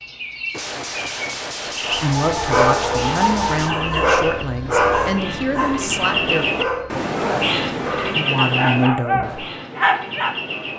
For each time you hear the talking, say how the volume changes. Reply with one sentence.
You can hear the talking from 1.8 to 6.5 s, at a steady volume; and briefly from 8.1 to 9.4 s.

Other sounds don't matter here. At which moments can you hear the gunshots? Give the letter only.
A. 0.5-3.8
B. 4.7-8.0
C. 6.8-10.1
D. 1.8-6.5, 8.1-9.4
A.